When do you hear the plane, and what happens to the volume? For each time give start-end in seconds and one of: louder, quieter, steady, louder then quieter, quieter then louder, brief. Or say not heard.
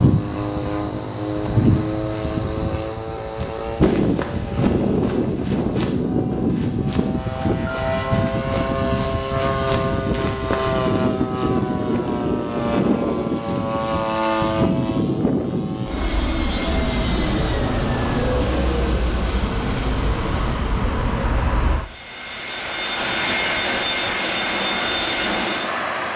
0.0-26.1 steady.